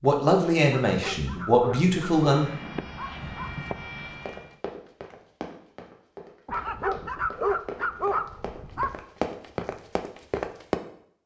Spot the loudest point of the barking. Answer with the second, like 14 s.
7 s.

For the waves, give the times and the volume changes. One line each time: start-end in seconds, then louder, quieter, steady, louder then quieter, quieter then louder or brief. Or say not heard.
not heard.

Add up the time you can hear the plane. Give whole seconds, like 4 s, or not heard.
2 s.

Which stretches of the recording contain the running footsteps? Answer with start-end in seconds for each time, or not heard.
3.1-10.8.